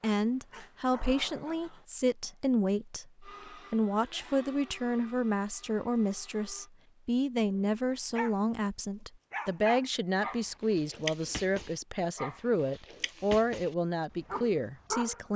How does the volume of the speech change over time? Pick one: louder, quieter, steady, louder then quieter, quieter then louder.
steady.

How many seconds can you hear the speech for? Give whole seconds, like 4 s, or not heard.
15 s.